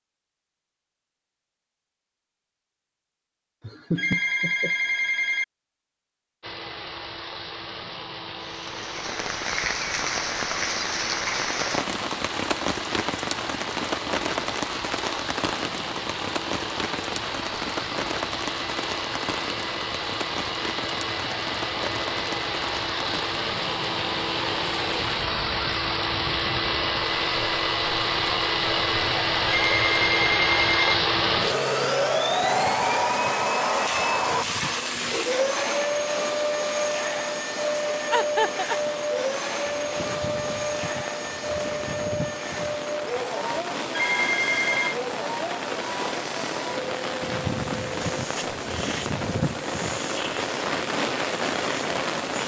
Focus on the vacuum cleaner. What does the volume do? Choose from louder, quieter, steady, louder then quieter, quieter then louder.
louder then quieter.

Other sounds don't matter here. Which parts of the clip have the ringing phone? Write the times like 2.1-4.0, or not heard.
4.0-5.5, 29.4-30.9, 43.9-45.0.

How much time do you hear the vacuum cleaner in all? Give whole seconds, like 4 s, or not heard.
46 s.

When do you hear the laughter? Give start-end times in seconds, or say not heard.
3.6-4.8, 38.1-38.8.